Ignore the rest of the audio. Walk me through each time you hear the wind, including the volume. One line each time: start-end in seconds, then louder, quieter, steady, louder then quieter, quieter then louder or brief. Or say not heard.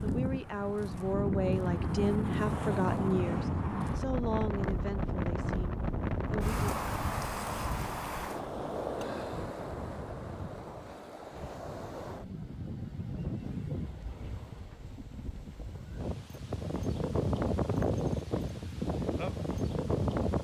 0.0-20.4 quieter then louder.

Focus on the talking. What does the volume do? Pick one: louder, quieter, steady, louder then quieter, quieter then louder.
quieter.